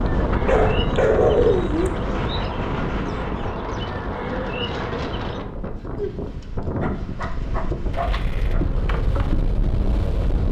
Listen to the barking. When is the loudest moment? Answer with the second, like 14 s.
1 s.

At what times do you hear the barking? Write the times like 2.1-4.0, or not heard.
0.5-1.9, 6.8-8.6.